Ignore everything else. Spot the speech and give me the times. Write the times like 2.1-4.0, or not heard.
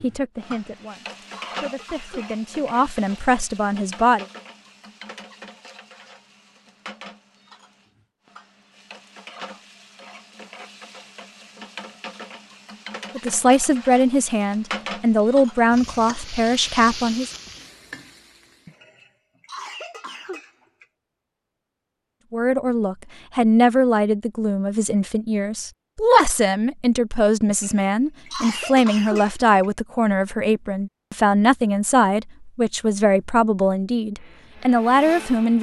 0.0-4.2, 13.2-17.3, 22.3-35.5.